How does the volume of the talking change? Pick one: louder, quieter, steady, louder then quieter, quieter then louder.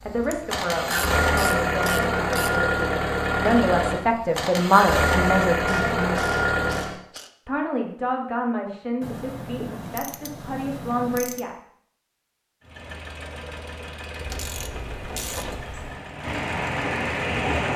louder then quieter.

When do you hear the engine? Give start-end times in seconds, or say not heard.
0.0-7.0, 12.6-17.7.